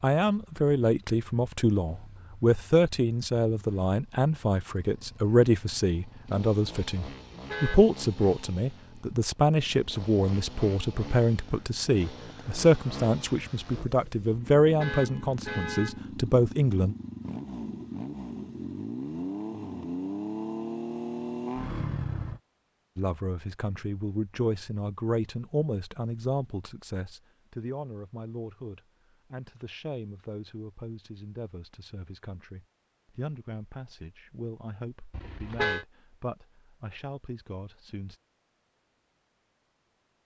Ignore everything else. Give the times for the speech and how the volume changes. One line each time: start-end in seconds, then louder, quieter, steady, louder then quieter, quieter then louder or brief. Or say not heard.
0.0-16.9 steady
22.9-38.2 quieter.